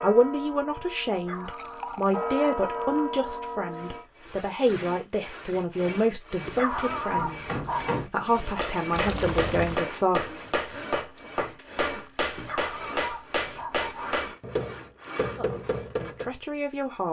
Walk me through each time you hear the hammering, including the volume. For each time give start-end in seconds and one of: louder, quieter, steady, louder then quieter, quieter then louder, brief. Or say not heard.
7.1-16.4 steady.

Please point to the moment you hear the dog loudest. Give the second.
7 s.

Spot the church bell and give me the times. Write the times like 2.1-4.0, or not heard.
0.0-4.0.